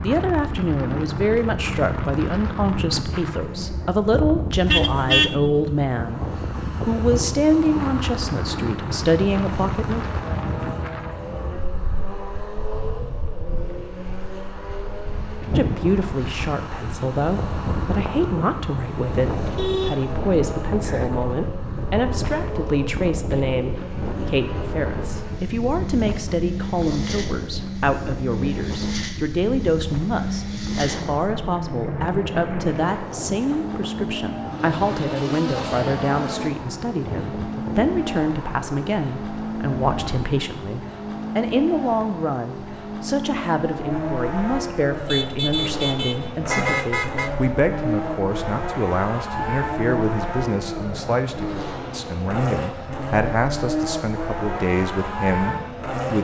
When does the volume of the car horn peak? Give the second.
5 s.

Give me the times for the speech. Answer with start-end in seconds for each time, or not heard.
0.0-6.2, 6.8-10.2, 15.6-56.1.